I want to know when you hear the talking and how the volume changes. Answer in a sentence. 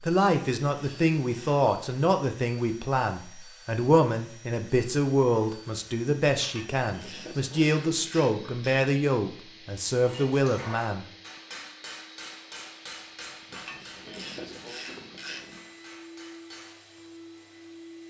The talking can be heard from 0.0 to 11.1 s, at a steady volume.